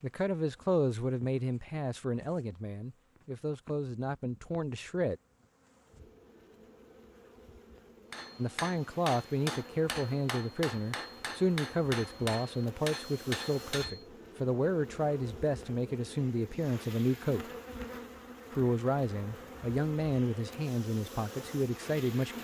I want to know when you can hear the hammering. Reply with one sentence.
The hammering can be heard from 8.1 to 14.1 s.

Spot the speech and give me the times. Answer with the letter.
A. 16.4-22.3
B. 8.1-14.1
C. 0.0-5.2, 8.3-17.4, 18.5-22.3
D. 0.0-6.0
C.